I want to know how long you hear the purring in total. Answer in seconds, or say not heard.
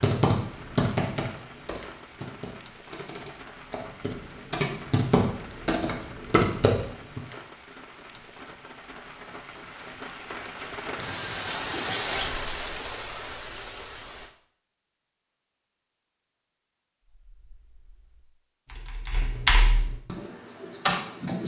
not heard.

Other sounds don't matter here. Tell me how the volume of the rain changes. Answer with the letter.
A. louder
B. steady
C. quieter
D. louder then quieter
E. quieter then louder
A.